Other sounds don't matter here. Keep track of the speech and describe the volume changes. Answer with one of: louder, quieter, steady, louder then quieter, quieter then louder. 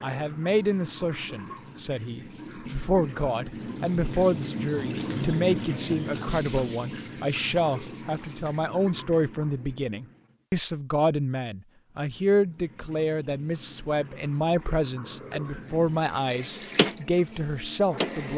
steady.